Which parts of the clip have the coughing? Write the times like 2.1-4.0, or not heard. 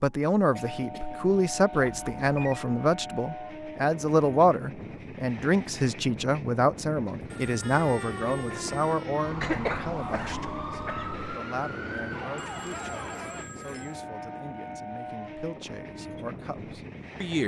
0.6-1.2, 9.4-11.3.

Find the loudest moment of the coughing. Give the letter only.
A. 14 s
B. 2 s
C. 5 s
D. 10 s
D.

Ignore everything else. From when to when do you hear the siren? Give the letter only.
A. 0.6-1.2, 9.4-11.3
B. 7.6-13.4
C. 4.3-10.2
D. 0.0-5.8
B.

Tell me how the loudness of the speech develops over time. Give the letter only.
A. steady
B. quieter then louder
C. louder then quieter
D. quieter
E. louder
D.